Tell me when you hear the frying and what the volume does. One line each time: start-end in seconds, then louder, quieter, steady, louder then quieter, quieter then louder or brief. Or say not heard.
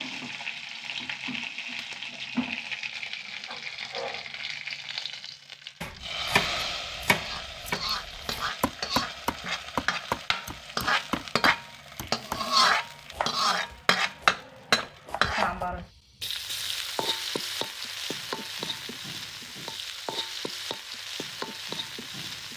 0.0-22.5 louder then quieter.